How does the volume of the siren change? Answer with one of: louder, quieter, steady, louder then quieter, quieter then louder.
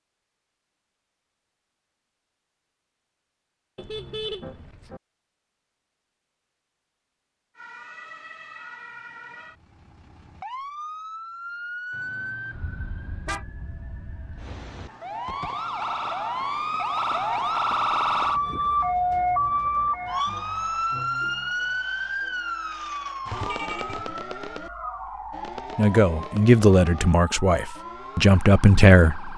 louder then quieter.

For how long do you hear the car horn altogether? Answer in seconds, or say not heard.
4 s.